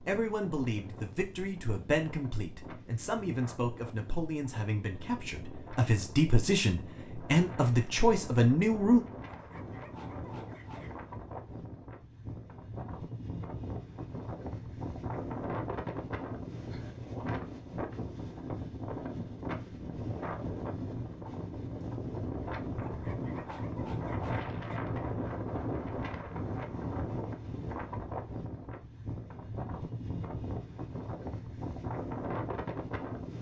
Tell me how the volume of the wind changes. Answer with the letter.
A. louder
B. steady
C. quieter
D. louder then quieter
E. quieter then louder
A.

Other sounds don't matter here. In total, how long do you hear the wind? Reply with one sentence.
You can hear the wind for 33 seconds altogether.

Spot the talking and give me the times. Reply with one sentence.
You can hear the talking from 0.0 to 9.0 s.